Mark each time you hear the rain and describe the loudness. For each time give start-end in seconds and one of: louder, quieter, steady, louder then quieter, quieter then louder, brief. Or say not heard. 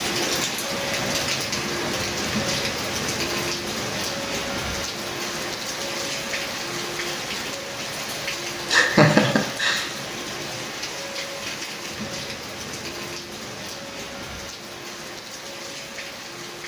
0.0-16.6 quieter.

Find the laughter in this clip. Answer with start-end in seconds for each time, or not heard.
8.7-9.8.